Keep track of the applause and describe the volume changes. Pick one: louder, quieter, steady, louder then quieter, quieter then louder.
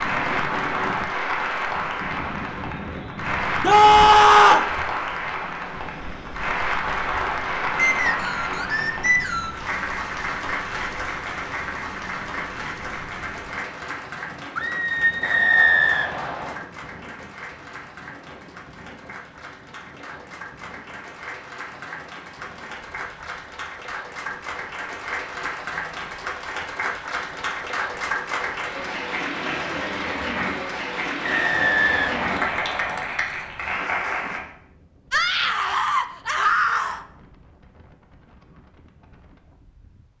quieter then louder.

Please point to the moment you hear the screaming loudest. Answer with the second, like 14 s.
4 s.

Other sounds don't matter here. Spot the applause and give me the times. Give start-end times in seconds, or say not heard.
0.0-34.4.